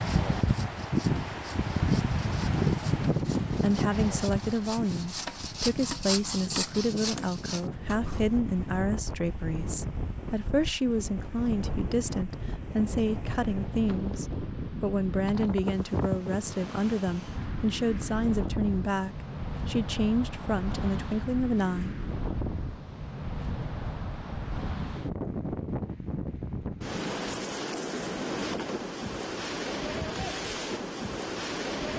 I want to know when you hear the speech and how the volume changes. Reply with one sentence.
You can hear the speech from 3.6 to 21.9 s, at a steady volume.